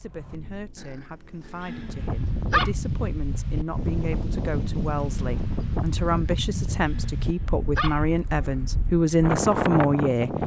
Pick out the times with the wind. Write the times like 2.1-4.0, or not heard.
1.7-10.4.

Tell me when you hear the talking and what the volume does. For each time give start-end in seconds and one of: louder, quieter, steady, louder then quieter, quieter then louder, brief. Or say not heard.
0.0-10.3 louder.